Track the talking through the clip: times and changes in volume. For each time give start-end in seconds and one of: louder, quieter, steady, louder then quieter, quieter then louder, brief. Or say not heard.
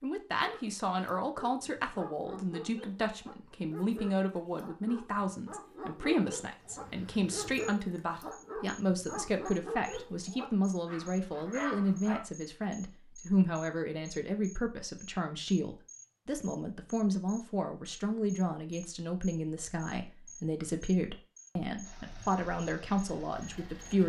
0.0-24.0 steady.